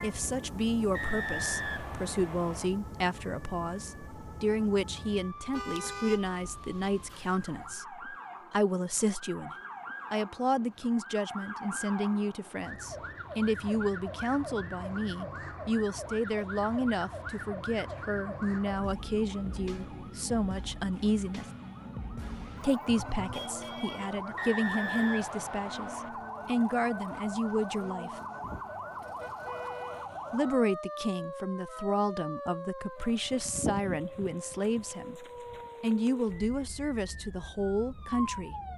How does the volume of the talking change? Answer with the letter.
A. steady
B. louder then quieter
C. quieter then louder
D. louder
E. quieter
A.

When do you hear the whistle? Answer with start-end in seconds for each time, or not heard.
0.9-2.7, 24.4-26.1.